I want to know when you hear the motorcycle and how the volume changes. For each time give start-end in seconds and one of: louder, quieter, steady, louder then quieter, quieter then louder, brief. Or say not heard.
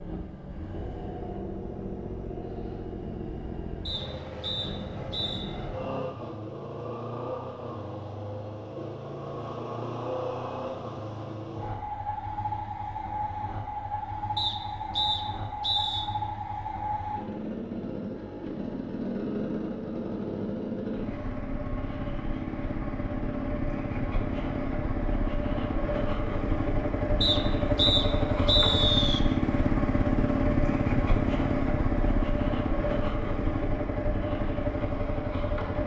0.0-35.8 louder.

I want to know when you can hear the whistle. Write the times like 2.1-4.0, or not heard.
3.9-5.5, 14.3-16.1, 27.2-29.2.